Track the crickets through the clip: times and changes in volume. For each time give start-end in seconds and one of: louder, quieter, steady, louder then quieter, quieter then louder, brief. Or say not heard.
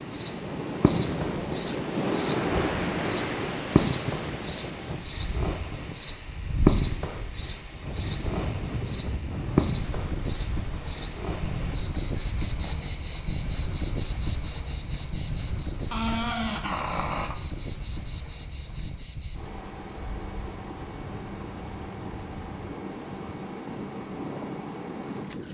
0.0-25.4 quieter.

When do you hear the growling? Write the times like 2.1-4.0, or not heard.
15.9-17.4.